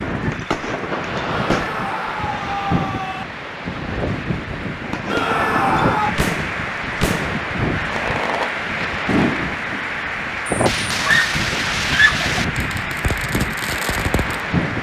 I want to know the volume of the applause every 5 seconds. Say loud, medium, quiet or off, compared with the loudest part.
medium, loud, loud.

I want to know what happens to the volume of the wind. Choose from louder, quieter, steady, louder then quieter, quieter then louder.
steady.